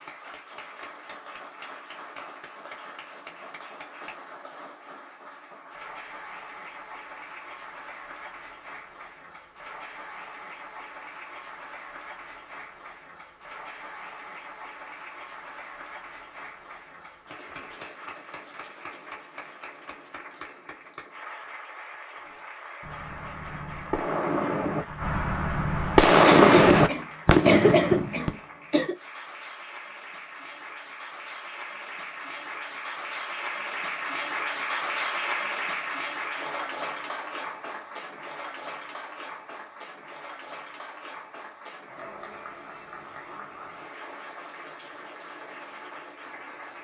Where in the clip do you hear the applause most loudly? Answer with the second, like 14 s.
35 s.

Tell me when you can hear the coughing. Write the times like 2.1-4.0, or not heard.
26.2-28.9.